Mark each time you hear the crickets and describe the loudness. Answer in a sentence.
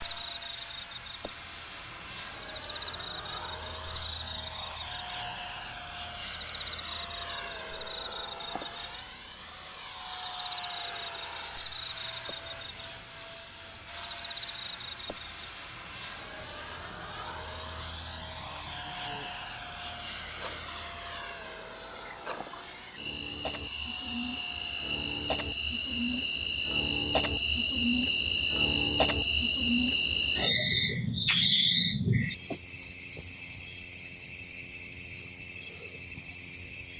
You can hear the crickets from 0.0 to 36.9 s, getting louder.